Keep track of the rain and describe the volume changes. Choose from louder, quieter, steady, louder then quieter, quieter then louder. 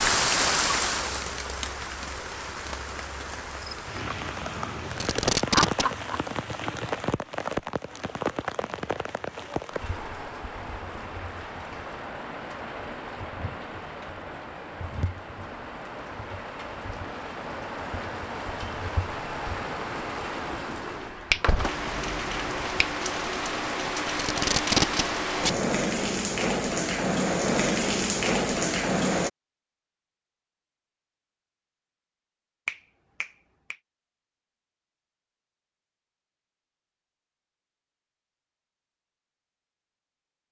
quieter then louder.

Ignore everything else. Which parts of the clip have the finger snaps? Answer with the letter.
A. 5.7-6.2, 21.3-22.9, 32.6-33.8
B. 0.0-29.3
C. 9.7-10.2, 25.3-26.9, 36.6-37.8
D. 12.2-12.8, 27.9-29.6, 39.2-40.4
A.